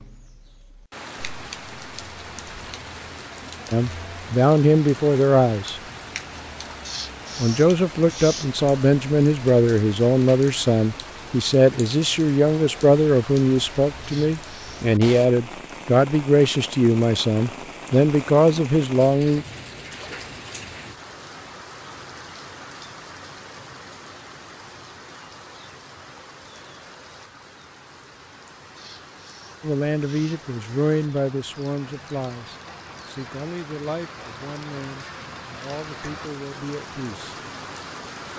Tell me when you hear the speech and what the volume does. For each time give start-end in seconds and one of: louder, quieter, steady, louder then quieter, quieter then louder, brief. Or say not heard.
3.7-5.8 brief
7.3-19.4 steady
29.6-37.4 quieter.